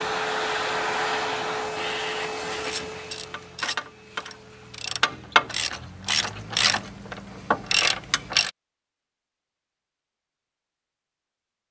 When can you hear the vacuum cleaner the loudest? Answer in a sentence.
The loudest moment of the vacuum cleaner is at 1 second.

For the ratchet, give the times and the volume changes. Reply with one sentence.
The ratchet can be heard from 2.5 to 8.5 s, getting louder.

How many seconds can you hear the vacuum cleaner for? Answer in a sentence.
You can hear the vacuum cleaner for 5 seconds altogether.